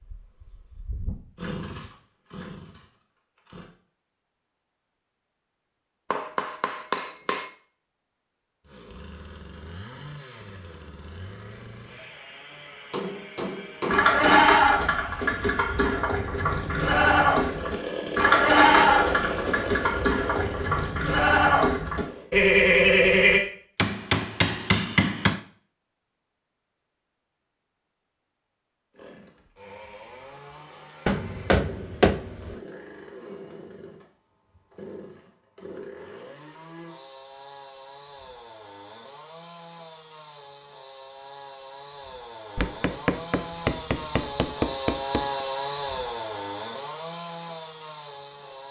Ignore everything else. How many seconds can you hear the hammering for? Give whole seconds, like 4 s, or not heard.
9 s.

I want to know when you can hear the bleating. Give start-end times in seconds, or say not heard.
13.9-23.4.